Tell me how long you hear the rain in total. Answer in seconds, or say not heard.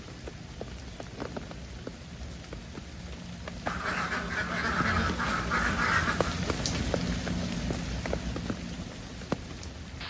10 s.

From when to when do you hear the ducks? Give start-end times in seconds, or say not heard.
3.6-6.4.